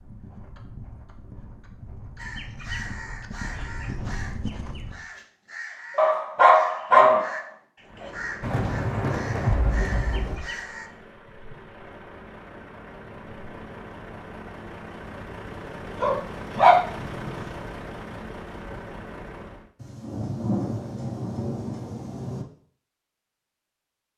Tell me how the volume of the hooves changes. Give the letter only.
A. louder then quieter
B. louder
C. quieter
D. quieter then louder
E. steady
B.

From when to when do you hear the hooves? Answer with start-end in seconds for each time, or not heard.
0.0-5.0.